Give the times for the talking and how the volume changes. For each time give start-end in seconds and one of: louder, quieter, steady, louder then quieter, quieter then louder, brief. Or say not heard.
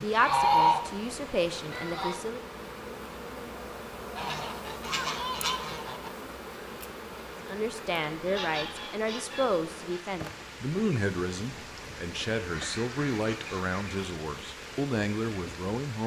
0.0-2.5 brief
7.5-16.0 steady.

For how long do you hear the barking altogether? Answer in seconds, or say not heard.
not heard.